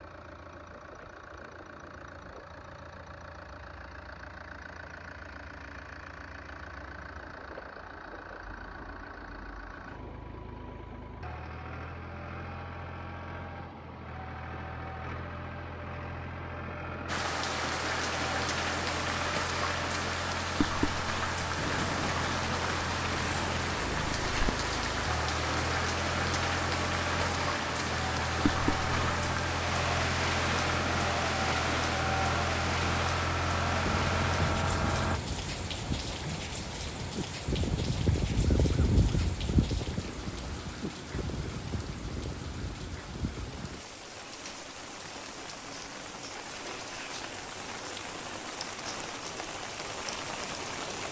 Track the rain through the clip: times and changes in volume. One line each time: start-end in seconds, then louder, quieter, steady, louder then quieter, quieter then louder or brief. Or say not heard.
17.1-51.0 quieter.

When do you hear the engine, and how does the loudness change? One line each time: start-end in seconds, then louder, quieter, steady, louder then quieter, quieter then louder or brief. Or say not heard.
0.0-35.2 louder.